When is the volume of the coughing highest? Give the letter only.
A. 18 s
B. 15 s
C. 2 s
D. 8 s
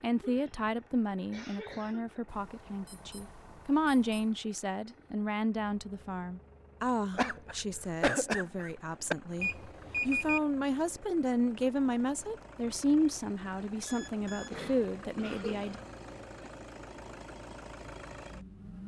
D.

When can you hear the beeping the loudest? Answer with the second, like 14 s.
10 s.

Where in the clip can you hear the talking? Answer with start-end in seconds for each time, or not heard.
0.0-15.8.